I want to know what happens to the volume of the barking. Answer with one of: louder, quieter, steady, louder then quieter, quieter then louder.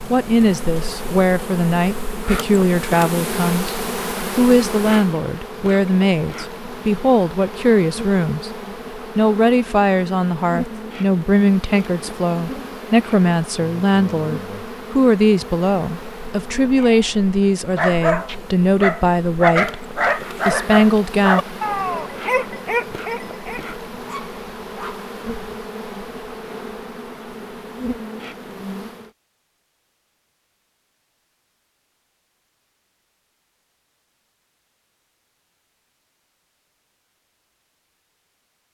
quieter.